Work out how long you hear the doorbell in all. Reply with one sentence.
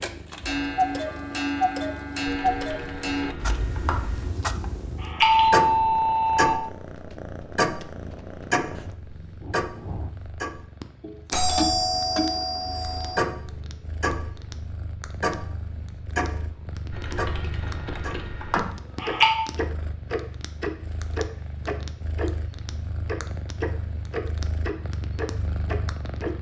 The doorbell can be heard for 5 seconds in total.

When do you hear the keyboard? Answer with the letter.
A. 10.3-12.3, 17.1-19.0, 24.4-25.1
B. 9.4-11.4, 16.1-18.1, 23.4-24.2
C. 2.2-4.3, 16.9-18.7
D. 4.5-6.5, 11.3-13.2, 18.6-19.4
C.